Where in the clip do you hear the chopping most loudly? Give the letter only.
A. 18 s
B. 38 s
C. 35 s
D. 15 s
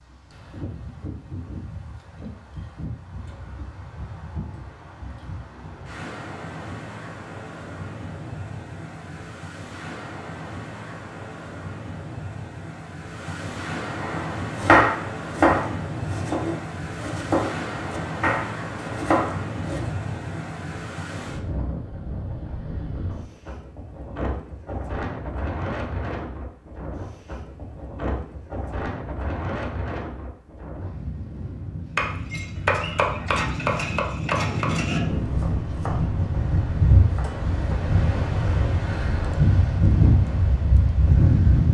D.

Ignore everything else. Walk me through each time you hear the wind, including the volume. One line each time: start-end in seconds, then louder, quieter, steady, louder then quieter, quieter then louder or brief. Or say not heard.
0.0-41.6 louder.